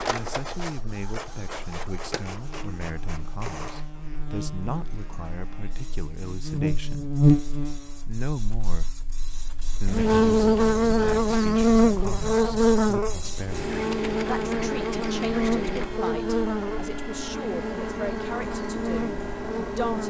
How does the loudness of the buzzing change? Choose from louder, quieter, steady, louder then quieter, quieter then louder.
louder then quieter.